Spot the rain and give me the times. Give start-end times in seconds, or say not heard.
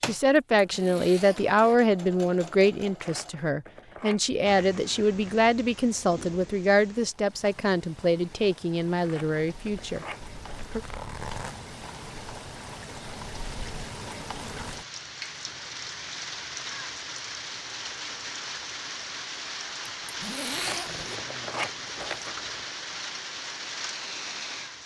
4.4-24.8.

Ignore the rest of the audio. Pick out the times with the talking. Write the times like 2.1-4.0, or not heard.
0.0-10.1.